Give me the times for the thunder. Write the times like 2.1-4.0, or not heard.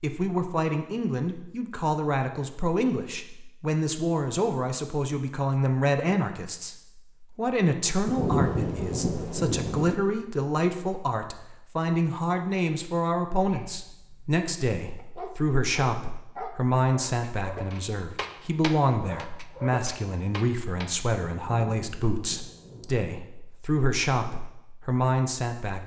8.1-10.0, 21.3-23.1.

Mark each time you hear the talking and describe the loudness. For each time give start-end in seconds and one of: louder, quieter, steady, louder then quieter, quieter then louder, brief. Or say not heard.
0.0-25.8 steady.